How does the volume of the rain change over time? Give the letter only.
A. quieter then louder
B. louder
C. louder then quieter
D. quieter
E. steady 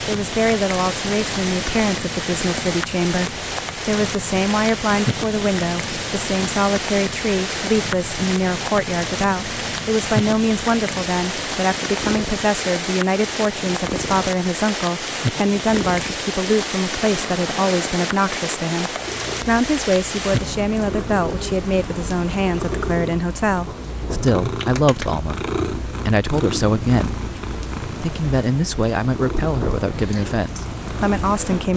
D.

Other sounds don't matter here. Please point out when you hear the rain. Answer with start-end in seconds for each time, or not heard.
0.0-31.7.